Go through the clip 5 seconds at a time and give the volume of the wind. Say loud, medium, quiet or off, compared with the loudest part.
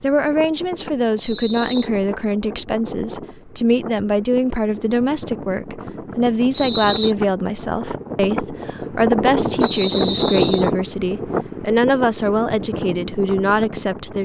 medium, loud, loud.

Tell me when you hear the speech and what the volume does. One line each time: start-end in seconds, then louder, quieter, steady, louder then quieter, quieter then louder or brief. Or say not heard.
0.0-14.1 steady.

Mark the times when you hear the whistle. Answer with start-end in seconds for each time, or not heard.
1.2-1.9, 6.5-7.2, 9.6-10.7.